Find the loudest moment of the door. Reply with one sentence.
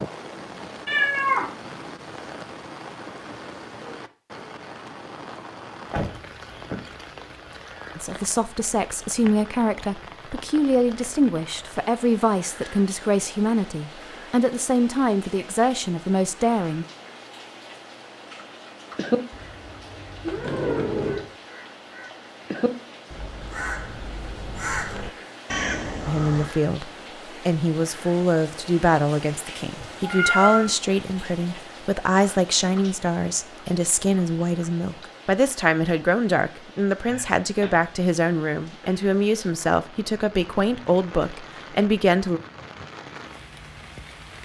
The loudest moment of the door is at 21 seconds.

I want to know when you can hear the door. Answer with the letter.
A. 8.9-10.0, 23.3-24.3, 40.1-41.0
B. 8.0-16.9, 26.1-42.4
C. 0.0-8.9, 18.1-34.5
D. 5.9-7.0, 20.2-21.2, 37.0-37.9
D.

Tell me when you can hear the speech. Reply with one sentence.
The speech can be heard from 8.0 to 16.9 s and from 26.1 to 42.4 s.